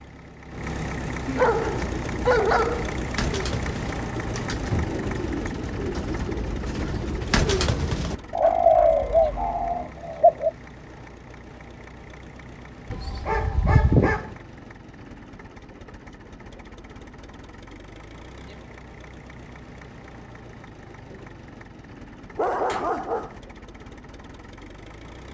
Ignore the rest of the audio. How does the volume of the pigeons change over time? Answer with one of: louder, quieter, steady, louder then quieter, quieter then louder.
louder.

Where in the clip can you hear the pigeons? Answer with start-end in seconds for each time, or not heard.
1.6-10.5.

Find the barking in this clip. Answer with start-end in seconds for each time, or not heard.
1.2-3.0, 8.4-10.0, 12.9-14.3, 22.4-23.4.